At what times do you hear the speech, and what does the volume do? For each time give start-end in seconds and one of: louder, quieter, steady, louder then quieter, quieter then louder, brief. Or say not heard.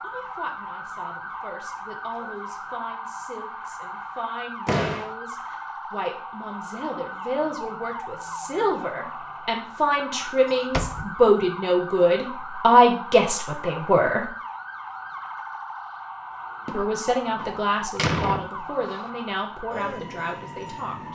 0.0-14.3 louder
16.6-21.1 quieter.